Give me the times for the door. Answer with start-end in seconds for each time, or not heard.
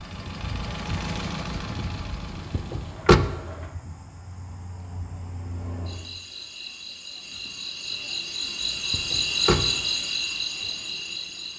2.5-3.4, 8.9-9.8.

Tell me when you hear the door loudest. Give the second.
3 s.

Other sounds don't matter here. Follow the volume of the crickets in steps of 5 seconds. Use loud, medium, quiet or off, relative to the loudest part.
quiet, loud, loud.